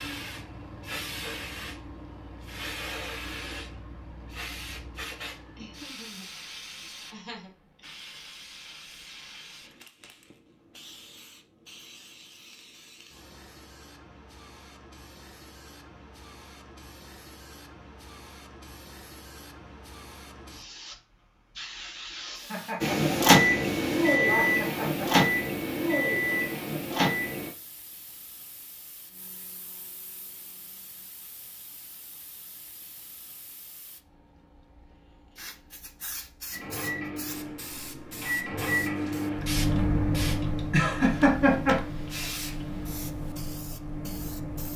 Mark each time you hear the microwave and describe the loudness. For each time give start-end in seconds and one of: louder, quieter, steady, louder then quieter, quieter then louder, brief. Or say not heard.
22.8-27.5 quieter
36.5-44.7 louder then quieter.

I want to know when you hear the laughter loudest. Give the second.
41 s.